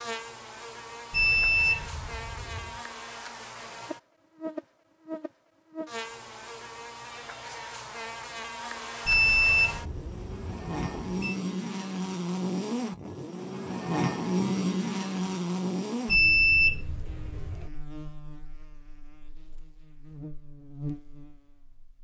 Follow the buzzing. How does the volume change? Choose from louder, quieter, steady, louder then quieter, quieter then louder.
louder then quieter.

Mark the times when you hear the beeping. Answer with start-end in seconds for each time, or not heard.
1.1-2.8, 9.1-11.3, 16.1-17.7.